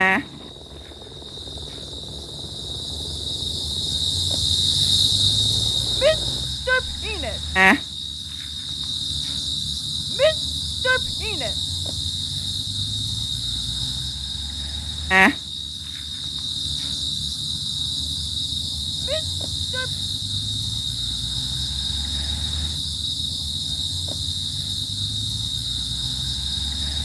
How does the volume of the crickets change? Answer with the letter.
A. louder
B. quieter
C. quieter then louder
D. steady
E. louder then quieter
D.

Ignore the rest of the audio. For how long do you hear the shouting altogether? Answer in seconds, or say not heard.
4 s.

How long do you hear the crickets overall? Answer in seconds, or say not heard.
27 s.